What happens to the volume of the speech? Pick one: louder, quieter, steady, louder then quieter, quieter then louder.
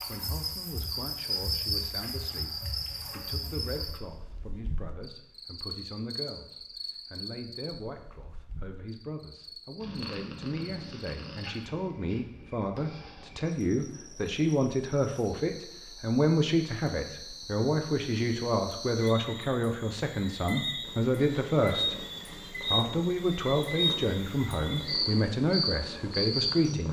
louder.